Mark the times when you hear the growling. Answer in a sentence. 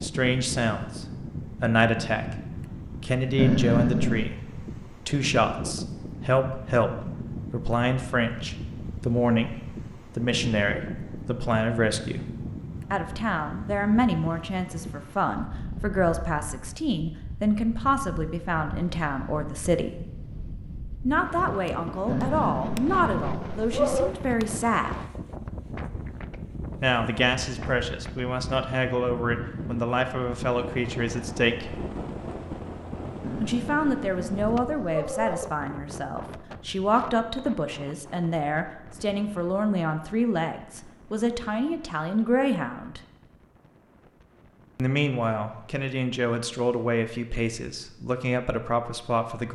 You can hear the growling from 3.4 to 4.3 s, from 22.1 to 24.1 s and from 33.2 to 35.5 s.